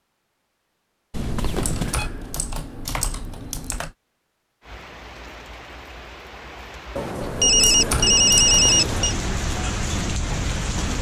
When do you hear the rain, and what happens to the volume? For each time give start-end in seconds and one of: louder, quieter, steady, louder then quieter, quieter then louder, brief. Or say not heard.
4.6-10.9 louder.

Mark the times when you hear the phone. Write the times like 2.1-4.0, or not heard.
1.1-2.1, 7.0-9.2.